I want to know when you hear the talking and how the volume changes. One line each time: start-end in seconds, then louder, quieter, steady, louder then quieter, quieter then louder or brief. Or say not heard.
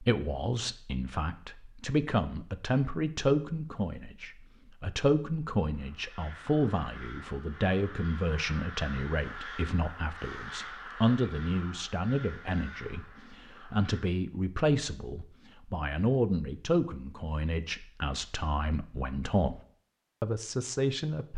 0.0-19.6 steady
20.2-21.3 brief.